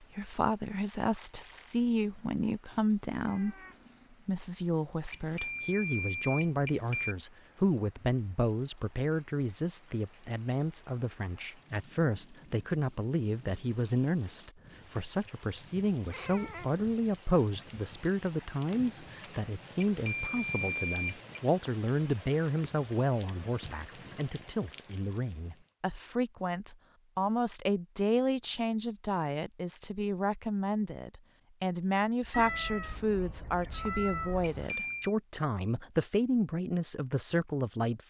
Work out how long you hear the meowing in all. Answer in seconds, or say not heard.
4 s.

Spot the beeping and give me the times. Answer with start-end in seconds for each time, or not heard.
5.1-7.2, 19.8-21.4, 34.4-35.1.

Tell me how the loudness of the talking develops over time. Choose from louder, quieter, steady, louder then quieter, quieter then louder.
steady.